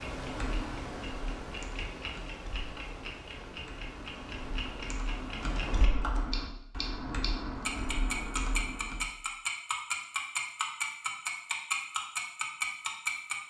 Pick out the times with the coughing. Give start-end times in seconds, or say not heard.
not heard.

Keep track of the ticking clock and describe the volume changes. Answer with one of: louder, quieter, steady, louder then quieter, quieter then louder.
louder.